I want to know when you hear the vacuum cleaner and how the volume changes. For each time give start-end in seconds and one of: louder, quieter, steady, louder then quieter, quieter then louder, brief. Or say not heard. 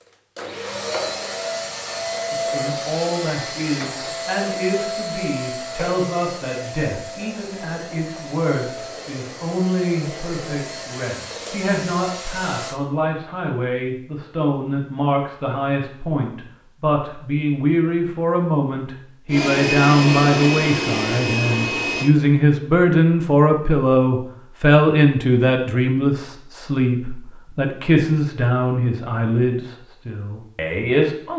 0.3-12.8 quieter
19.3-22.1 brief.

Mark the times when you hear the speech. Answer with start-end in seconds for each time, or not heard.
2.3-31.3.